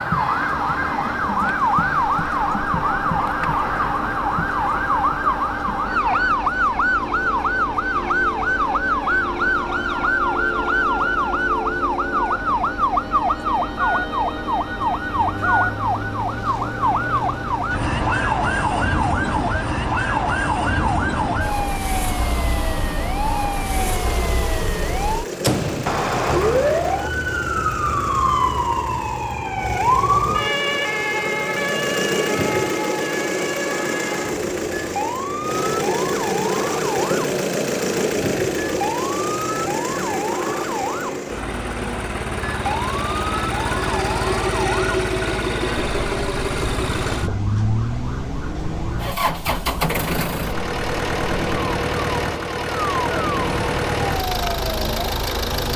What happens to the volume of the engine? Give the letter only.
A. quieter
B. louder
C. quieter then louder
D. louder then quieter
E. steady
B.